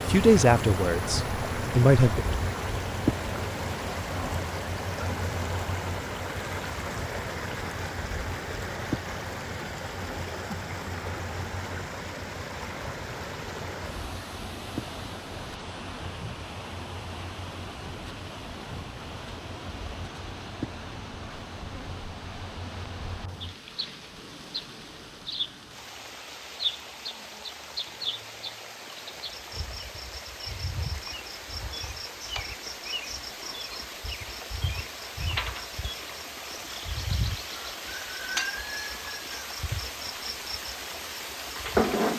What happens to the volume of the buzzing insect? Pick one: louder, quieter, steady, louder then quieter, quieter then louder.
quieter then louder.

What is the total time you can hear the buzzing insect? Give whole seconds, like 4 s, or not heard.
42 s.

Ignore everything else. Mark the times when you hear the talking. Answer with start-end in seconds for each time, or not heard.
0.1-2.2.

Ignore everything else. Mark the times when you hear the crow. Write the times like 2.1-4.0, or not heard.
not heard.